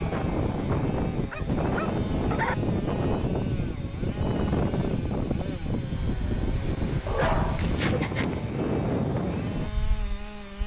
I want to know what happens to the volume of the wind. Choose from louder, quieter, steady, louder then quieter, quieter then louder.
steady.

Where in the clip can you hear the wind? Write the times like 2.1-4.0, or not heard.
0.0-10.6.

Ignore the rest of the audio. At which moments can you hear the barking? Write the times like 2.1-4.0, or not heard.
1.3-2.5, 7.0-8.3.